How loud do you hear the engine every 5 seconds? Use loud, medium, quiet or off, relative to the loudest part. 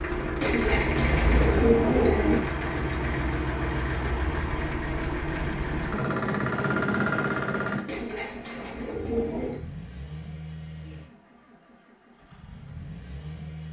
loud, loud, quiet.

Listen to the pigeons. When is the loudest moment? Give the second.
2 s.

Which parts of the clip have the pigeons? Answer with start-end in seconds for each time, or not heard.
0.4-2.4, 7.8-9.6.